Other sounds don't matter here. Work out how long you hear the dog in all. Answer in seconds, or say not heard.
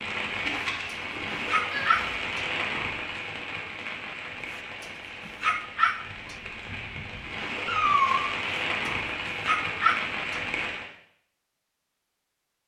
5 s.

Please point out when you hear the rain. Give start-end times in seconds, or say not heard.
0.0-10.9.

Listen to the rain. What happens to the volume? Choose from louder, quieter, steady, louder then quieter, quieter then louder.
quieter then louder.